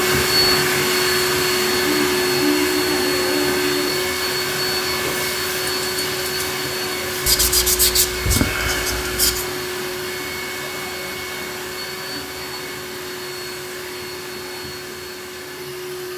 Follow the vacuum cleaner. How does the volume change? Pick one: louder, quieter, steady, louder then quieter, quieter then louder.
quieter.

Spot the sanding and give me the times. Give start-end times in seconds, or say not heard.
7.2-9.4.